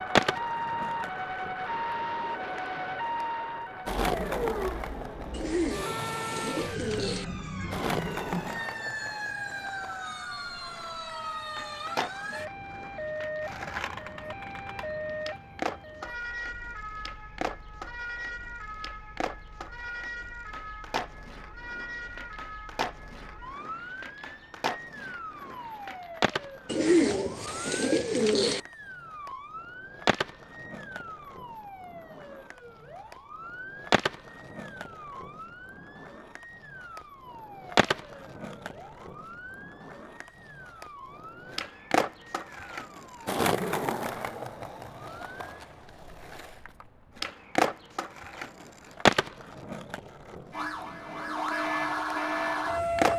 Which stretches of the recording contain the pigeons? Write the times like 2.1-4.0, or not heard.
5.3-7.2, 26.6-28.6.